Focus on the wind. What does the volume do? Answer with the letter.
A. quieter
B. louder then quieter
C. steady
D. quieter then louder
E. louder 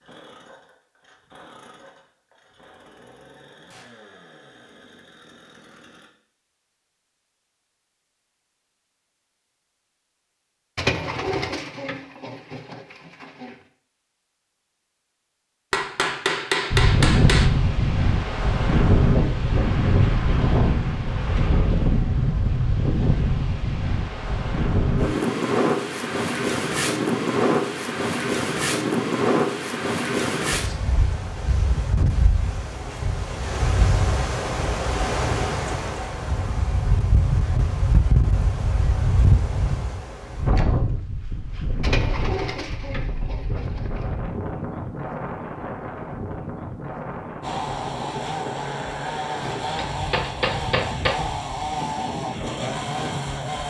A.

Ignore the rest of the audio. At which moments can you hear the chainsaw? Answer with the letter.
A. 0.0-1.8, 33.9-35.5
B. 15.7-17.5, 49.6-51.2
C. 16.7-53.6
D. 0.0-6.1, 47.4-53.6
D.